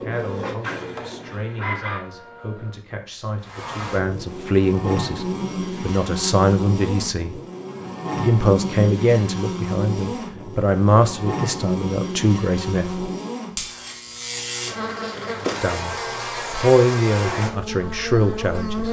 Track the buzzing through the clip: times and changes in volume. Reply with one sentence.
You can hear the buzzing from 3.4 to 18.8 s, at a steady volume.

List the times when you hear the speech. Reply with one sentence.
You can hear the speech from 0.0 to 7.4 s, from 8.2 to 13.1 s and from 15.6 to 18.8 s.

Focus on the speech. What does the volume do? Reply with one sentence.
The loudness of the speech goes up.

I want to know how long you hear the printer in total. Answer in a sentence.
You can hear the printer for 3 seconds altogether.